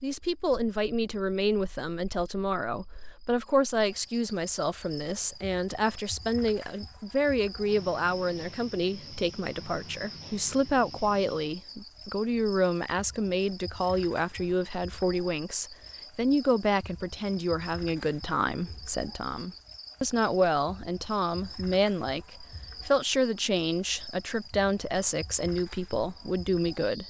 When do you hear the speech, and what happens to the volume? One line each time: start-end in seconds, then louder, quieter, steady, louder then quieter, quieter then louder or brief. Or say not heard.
0.0-27.0 steady.